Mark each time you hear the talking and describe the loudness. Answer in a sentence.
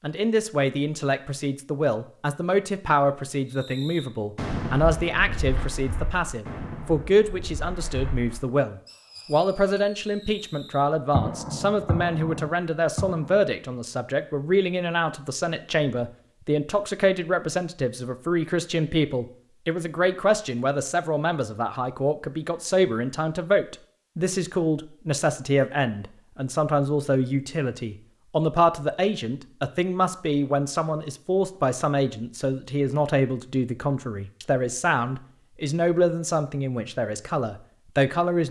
The talking can be heard from 0.0 to 38.4 s, at a steady volume.